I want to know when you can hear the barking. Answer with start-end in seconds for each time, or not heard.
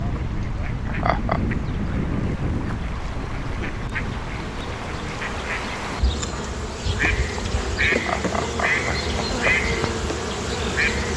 not heard.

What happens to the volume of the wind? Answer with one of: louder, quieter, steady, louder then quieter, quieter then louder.
quieter.